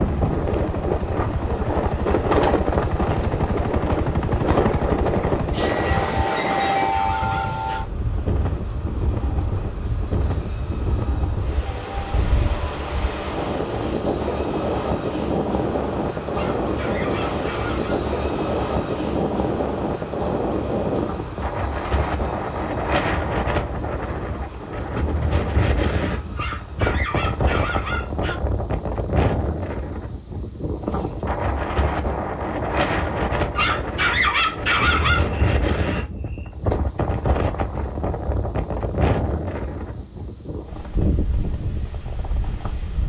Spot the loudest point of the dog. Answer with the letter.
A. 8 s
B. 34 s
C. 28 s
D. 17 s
B.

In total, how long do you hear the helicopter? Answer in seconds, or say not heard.
7 s.